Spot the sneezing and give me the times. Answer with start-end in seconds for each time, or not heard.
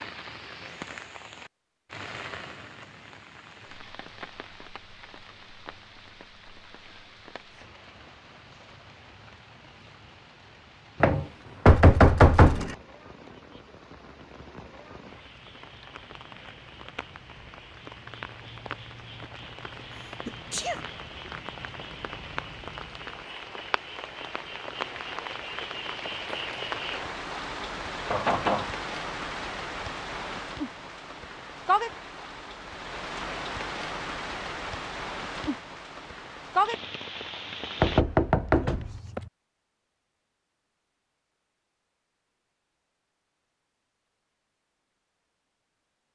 19.9-20.9.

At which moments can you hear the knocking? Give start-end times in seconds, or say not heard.
11.0-12.8, 28.1-28.7, 37.8-39.2.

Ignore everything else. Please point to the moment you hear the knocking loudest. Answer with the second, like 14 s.
12 s.